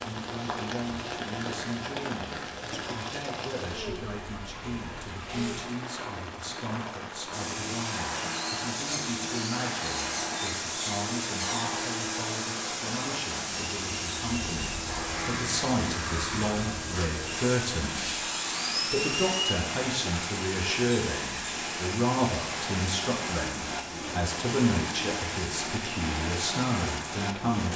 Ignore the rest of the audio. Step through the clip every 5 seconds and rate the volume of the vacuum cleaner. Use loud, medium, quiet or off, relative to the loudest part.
off, loud, loud, loud, medium, off.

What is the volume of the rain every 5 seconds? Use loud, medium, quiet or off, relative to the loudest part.
loud, medium, medium, medium, loud, loud.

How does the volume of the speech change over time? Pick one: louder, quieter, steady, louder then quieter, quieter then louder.
louder.